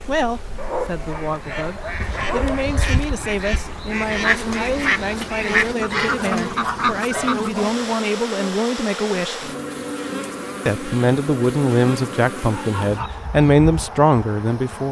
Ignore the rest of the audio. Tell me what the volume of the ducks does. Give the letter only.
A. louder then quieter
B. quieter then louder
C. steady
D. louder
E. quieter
D.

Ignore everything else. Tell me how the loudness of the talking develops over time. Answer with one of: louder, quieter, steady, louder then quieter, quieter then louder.
louder.